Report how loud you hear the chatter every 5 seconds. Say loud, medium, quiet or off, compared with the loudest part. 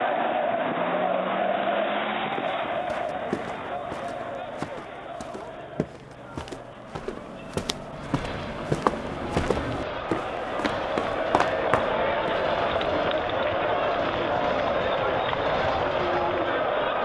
loud, quiet, loud, loud.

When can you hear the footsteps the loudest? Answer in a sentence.
The loudest moment of the footsteps is at 9 seconds.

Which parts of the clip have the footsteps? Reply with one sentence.
You can hear the footsteps from 2.3 to 12.9 s.